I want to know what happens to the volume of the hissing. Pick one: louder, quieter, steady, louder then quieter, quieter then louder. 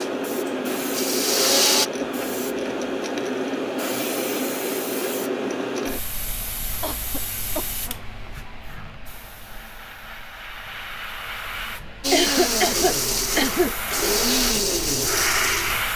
quieter then louder.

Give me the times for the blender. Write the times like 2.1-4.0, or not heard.
0.0-1.9, 12.0-15.8.